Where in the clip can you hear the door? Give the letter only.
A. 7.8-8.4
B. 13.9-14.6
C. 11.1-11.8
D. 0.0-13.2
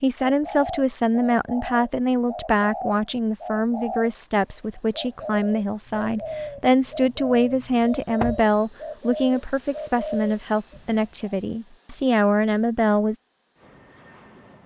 A.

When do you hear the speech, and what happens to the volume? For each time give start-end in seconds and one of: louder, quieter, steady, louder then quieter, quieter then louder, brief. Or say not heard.
0.0-13.2 steady.